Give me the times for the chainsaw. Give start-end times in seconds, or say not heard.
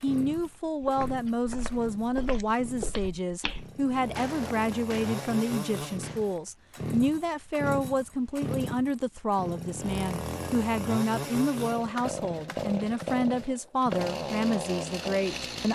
0.0-15.7.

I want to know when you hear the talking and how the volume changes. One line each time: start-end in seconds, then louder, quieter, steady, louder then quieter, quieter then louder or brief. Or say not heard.
0.0-15.7 steady.